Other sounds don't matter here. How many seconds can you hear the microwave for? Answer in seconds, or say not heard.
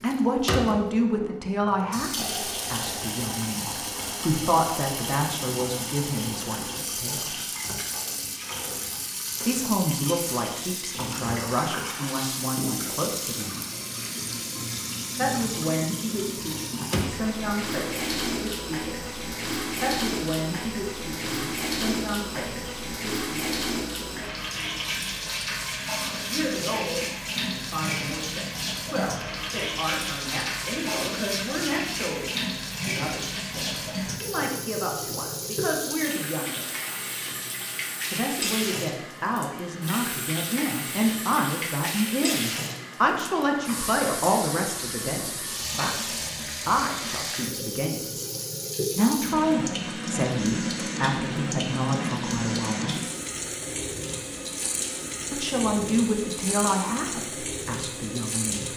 not heard.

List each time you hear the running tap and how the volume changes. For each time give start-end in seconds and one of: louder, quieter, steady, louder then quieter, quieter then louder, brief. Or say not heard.
0.0-58.7 steady.